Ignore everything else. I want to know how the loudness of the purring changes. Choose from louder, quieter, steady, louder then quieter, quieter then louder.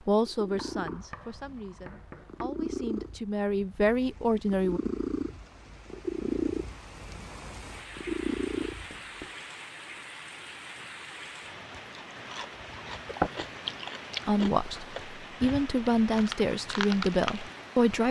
louder.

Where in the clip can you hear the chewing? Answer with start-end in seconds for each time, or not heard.
12.1-17.9.